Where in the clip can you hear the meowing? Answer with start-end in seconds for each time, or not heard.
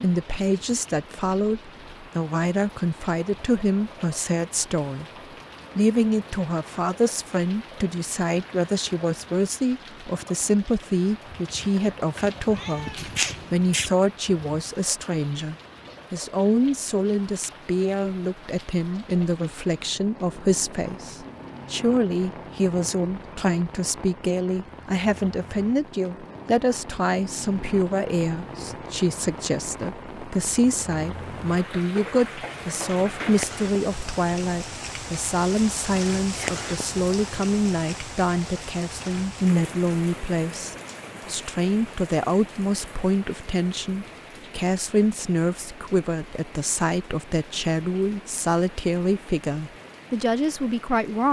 12.2-13.9.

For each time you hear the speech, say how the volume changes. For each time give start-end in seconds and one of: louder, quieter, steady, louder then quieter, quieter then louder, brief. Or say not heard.
0.0-5.0 steady
5.8-51.2 steady.